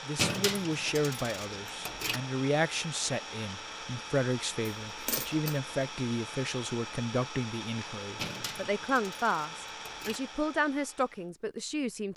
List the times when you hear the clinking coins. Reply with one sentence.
You can hear the clinking coins from 0.1 to 2.2 s, from 4.9 to 5.6 s and from 8.2 to 10.2 s.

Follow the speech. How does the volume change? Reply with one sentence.
The volume of the speech stays about the same.